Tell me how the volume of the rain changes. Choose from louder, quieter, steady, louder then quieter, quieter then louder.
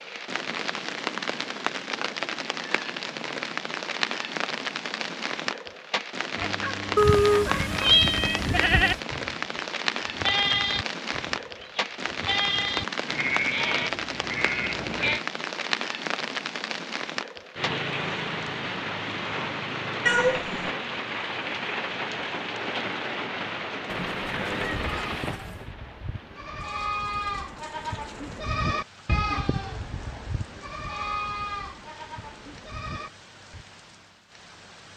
quieter.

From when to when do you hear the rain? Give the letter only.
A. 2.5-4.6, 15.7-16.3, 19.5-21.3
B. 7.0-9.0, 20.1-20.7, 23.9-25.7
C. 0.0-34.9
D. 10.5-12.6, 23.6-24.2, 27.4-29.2
C.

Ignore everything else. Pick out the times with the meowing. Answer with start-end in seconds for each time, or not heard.
7.0-9.0, 20.1-20.7, 23.9-25.7.